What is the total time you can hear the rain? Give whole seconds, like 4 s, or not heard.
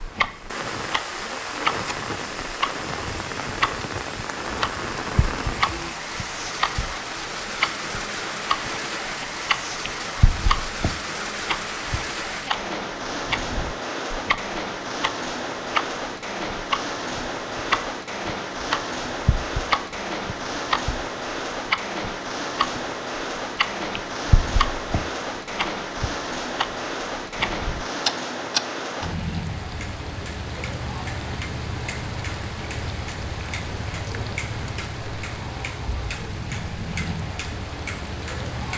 39 s.